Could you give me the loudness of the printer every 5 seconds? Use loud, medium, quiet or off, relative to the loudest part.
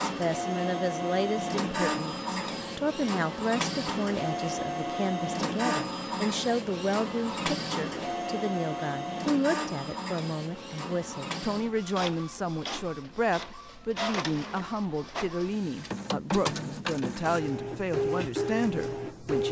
loud, loud, medium, loud.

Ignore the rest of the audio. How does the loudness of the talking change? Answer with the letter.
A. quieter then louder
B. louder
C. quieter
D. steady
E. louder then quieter
D.